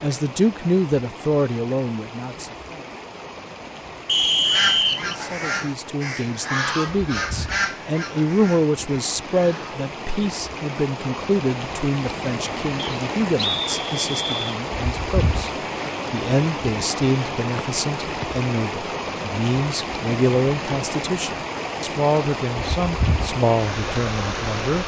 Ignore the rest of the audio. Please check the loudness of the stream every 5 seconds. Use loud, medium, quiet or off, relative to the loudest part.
medium, medium, loud, loud, loud.